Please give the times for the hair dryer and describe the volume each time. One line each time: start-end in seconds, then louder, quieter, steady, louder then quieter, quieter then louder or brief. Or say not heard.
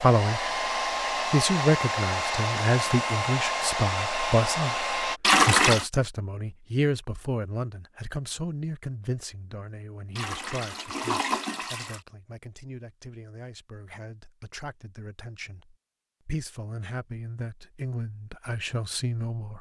0.0-5.2 steady.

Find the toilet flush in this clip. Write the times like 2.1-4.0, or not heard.
5.2-5.8, 10.2-12.0.